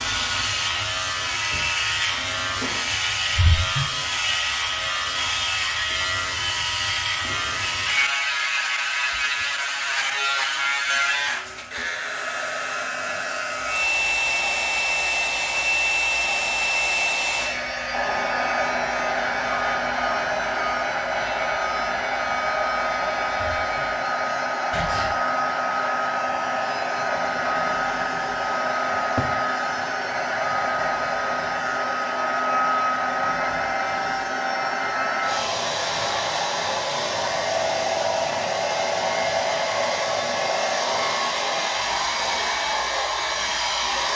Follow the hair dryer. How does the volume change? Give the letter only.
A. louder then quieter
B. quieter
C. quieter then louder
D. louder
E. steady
D.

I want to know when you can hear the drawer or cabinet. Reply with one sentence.
The drawer or cabinet can be heard from 2.1 to 3.0 s and from 28.9 to 29.4 s.